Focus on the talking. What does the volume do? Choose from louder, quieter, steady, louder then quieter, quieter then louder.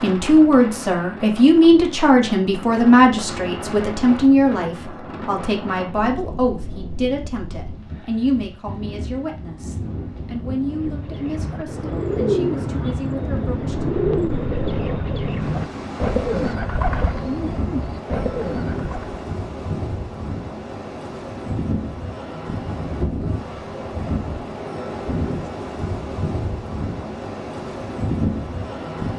quieter.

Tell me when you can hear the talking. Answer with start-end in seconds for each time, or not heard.
0.0-13.8.